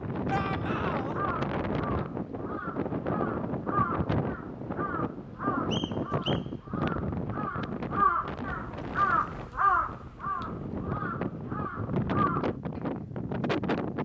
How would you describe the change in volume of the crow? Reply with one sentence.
The loudness of the crow goes up, then down.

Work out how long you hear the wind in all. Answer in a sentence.
The wind can be heard for 14 seconds in total.